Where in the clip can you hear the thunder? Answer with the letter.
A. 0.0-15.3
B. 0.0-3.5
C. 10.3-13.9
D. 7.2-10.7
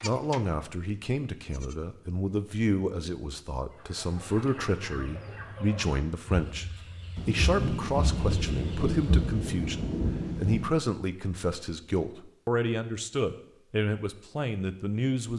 D.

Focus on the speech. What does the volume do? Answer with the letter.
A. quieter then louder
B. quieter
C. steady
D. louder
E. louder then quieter
C.